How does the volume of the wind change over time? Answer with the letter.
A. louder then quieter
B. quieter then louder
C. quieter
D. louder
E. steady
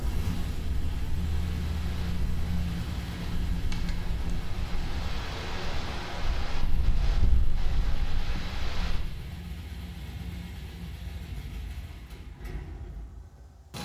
D.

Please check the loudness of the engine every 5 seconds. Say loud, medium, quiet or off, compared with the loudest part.
loud, medium, medium.